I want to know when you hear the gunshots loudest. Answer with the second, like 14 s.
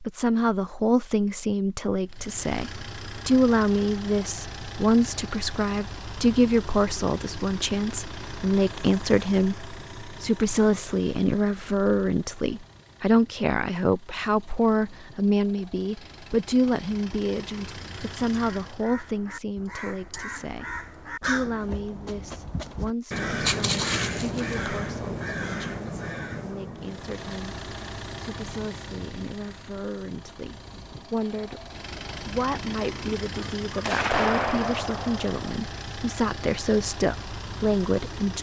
34 s.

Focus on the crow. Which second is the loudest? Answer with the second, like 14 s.
24 s.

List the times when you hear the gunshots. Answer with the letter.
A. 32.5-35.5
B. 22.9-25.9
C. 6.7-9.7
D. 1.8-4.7
A.